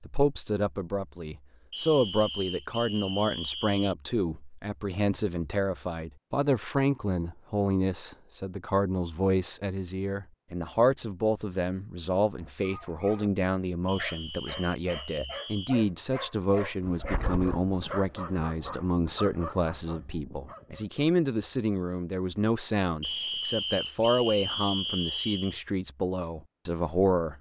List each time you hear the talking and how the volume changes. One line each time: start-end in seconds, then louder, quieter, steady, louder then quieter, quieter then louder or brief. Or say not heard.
0.0-27.3 steady.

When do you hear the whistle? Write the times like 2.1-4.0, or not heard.
1.7-4.0, 13.8-15.8, 23.0-25.6.